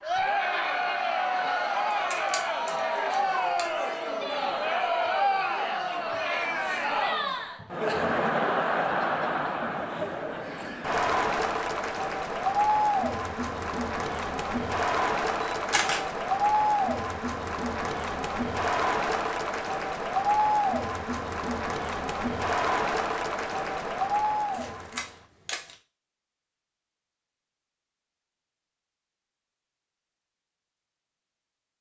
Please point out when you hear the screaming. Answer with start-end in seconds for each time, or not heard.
not heard.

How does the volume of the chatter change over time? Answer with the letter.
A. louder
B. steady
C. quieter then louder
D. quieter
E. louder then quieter
B.